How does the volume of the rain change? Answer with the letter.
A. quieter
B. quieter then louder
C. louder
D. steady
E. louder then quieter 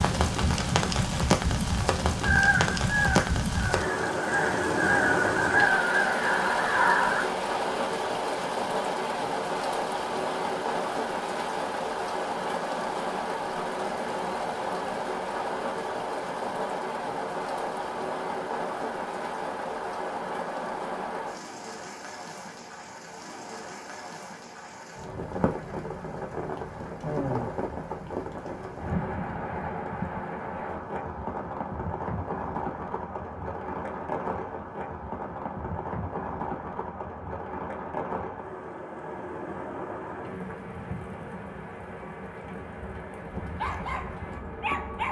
A.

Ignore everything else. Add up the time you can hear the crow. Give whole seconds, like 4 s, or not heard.
5 s.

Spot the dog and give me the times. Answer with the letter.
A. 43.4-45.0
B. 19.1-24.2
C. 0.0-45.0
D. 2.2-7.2
A.